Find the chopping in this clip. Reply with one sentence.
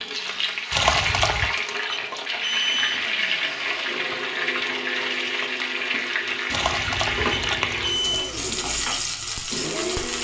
You can't hear the chopping here.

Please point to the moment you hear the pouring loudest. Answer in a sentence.
The volume of the pouring peaks at 1 second.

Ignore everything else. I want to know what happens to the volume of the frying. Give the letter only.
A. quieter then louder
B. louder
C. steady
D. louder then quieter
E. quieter
C.